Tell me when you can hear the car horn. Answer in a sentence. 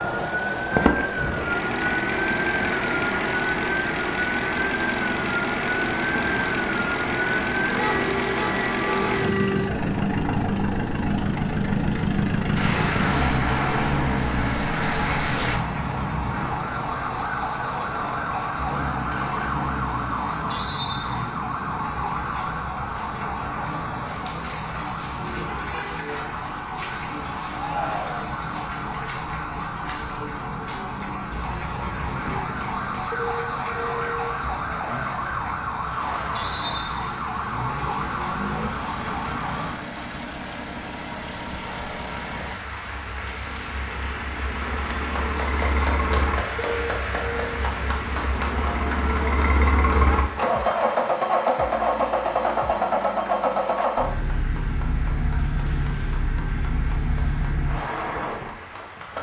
The car horn can be heard from 7.7 to 9.2 s, from 33.1 to 34.3 s and from 46.5 to 47.6 s.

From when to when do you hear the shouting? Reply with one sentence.
The shouting can be heard from 27.5 to 28.4 s.